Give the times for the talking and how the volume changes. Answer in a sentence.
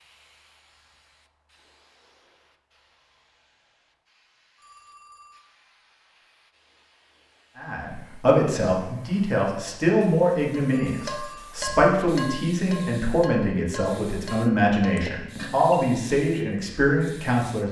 You can hear the talking from 7.5 to 17.6 s, at a steady volume.